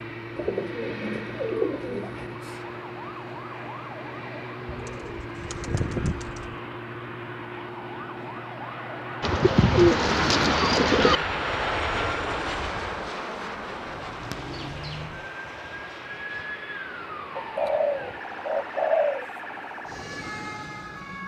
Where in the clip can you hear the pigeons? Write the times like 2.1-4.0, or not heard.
0.3-2.4, 4.7-6.5, 9.2-11.2, 14.2-15.0, 17.4-19.2.